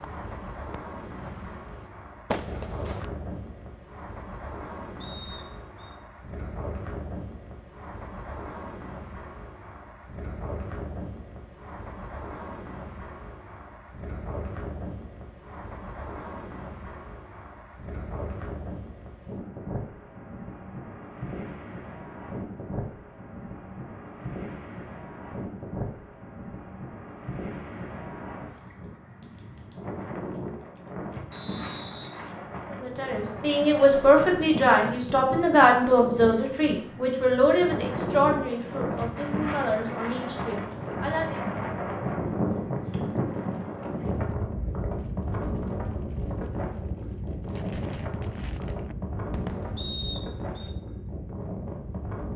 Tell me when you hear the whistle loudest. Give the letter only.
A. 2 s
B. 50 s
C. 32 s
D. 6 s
B.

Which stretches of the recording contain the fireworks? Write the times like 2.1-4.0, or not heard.
0.0-3.0, 43.1-50.0.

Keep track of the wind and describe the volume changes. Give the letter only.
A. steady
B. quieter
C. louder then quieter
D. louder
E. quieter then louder
D.